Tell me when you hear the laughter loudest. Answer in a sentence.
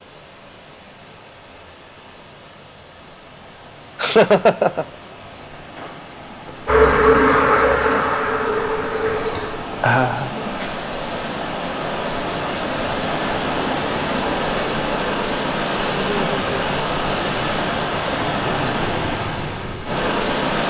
The volume of the laughter peaks at 4 seconds.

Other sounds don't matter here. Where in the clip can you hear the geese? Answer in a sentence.
You can't hear the geese here.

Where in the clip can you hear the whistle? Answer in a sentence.
The whistle can't be heard in this clip.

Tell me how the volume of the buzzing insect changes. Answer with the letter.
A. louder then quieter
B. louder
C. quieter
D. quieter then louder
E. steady
C.